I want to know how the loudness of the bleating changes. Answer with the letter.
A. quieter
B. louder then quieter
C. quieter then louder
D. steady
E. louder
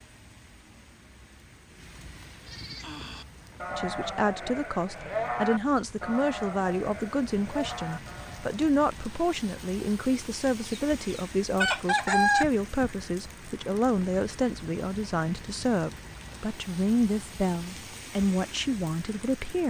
B.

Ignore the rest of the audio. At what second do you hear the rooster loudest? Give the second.
12 s.